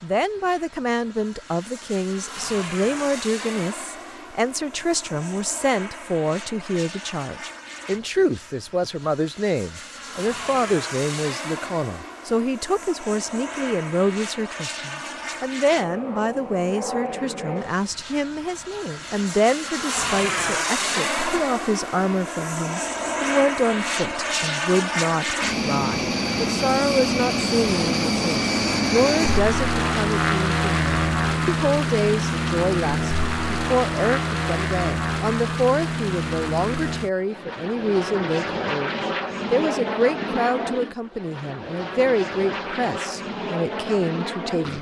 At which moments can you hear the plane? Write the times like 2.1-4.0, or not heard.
0.0-44.7.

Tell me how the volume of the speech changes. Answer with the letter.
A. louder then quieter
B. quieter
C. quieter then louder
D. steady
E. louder
D.